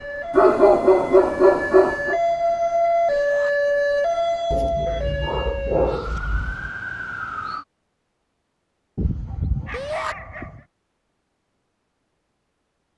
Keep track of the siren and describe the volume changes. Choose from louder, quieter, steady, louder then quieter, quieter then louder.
louder then quieter.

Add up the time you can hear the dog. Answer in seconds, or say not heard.
6 s.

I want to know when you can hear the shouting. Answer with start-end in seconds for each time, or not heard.
3.1-3.5, 9.7-10.2.